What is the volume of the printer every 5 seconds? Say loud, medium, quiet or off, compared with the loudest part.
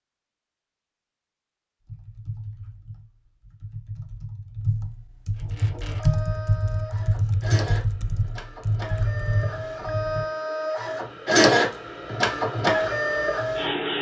off, quiet, loud.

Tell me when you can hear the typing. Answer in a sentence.
The typing can be heard from 1.9 to 10.2 s.